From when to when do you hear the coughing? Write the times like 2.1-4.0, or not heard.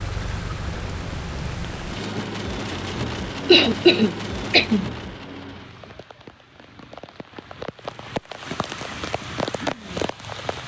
3.5-4.9.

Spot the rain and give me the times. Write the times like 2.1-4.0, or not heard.
0.0-10.6.